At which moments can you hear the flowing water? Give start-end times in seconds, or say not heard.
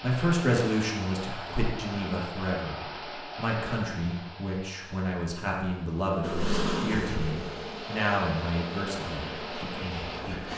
0.0-10.5.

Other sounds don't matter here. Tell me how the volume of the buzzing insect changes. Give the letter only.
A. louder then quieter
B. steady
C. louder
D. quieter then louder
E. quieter
E.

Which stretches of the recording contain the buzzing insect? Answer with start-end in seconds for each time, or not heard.
6.2-10.5.